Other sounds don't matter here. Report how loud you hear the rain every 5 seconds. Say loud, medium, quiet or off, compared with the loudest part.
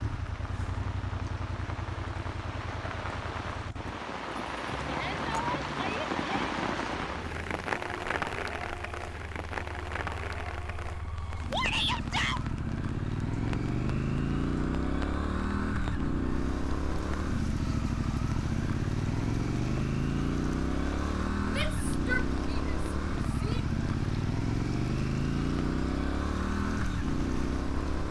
medium, loud, medium, quiet, quiet, quiet.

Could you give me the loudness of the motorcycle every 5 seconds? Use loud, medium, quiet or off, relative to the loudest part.
medium, quiet, loud, loud, loud, loud.